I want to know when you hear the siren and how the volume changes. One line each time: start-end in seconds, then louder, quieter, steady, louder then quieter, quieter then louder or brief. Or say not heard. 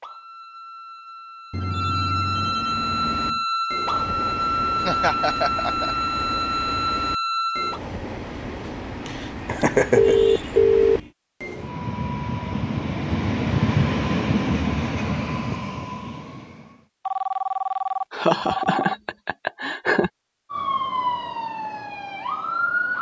0.0-7.8 louder
20.5-22.9 brief.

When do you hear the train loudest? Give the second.
14 s.